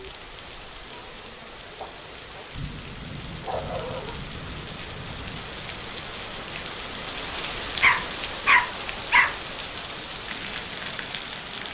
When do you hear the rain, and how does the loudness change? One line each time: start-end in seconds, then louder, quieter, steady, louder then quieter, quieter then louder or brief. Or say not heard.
0.0-11.7 louder.